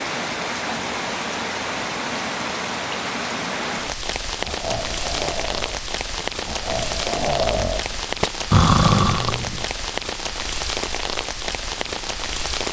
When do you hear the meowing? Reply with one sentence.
You can't hear the meowing here.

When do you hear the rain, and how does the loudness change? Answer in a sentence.
The rain can be heard from 0.0 to 12.6 s, at a steady volume.